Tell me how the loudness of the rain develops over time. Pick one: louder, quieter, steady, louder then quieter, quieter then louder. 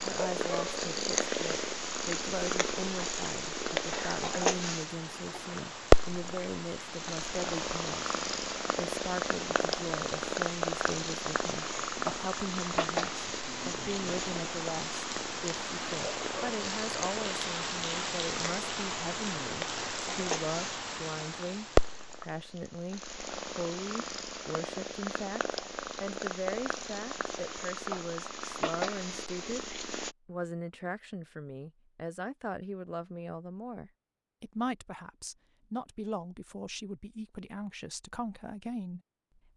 louder.